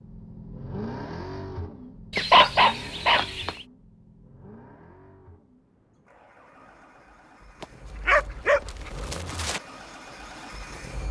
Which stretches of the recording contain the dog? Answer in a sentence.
You can hear the dog from 2.1 to 3.6 s and from 7.6 to 9.6 s.